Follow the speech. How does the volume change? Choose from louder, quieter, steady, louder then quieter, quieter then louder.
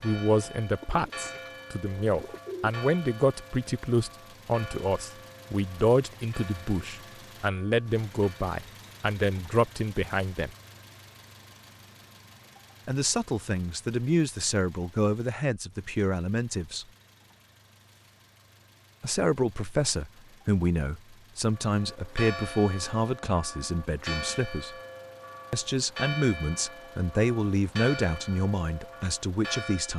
steady.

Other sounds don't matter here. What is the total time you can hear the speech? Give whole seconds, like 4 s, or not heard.
25 s.